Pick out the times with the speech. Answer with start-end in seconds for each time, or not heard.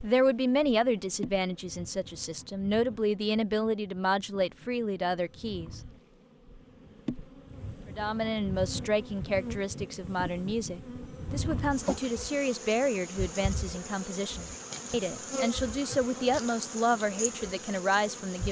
0.0-5.8, 8.0-18.4.